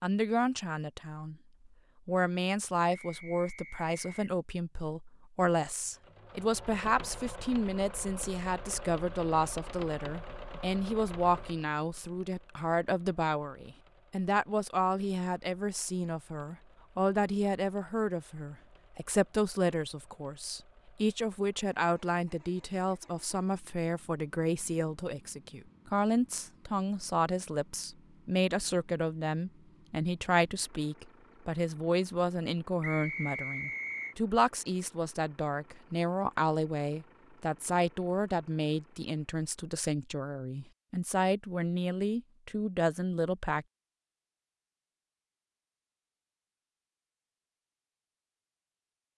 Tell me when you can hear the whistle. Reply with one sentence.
You can hear the whistle from 2.9 to 4.2 s and from 32.8 to 34.1 s.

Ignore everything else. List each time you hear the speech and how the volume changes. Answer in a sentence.
You can hear the speech from 0.0 to 43.6 s, at a steady volume.